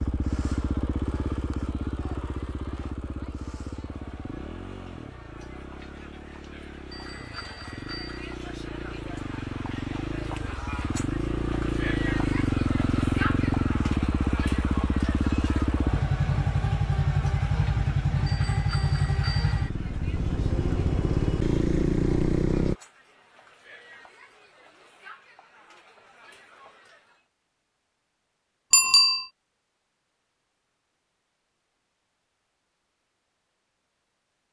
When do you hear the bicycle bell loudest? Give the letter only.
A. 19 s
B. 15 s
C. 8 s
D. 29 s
D.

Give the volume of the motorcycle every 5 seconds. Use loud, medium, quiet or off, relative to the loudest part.
medium, quiet, loud, loud, loud, off, off.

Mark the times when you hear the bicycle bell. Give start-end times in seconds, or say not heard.
6.9-8.3, 18.2-19.7, 28.7-29.2.